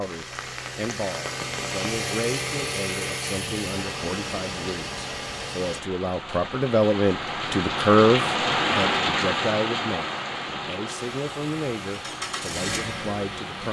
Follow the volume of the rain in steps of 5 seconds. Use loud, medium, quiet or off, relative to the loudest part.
medium, loud, medium.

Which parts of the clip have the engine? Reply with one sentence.
You can hear the engine from 0.0 to 5.8 s and from 10.9 to 13.6 s.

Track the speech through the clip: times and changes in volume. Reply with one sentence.
You can hear the speech from 0.0 to 13.6 s, getting louder then quieter.